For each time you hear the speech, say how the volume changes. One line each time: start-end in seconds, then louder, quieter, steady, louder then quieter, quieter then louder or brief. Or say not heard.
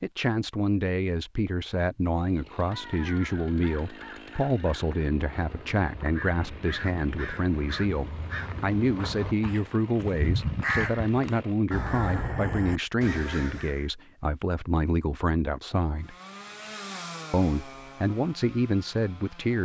0.0-16.1 steady
17.3-19.6 brief.